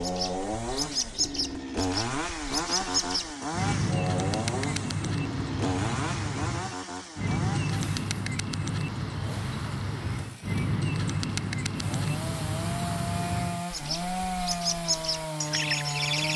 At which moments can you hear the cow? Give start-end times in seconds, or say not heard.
not heard.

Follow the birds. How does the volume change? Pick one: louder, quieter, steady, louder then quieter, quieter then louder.
steady.